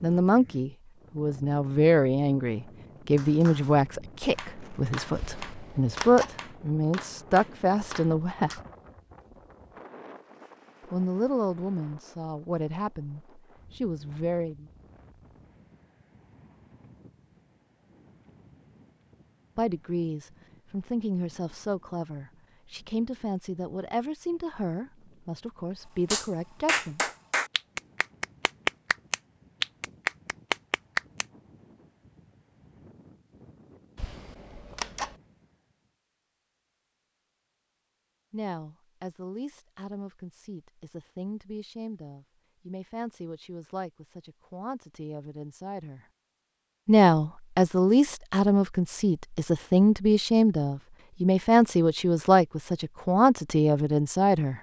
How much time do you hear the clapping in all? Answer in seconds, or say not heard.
11 s.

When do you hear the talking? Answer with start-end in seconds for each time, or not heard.
0.0-8.6, 10.9-14.7, 19.6-27.0, 38.3-46.0, 46.9-54.5.